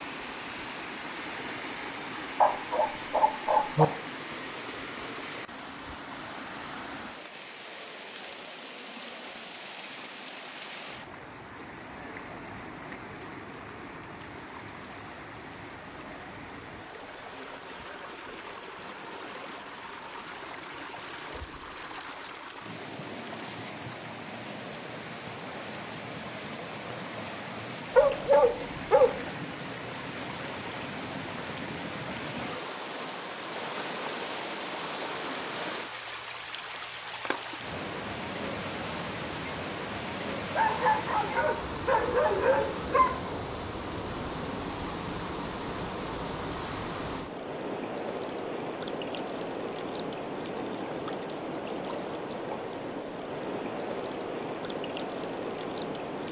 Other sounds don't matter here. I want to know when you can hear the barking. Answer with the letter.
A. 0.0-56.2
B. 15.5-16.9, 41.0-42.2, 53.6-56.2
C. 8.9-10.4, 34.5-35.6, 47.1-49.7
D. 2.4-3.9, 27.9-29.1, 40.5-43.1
D.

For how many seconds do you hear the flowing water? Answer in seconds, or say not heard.
56 s.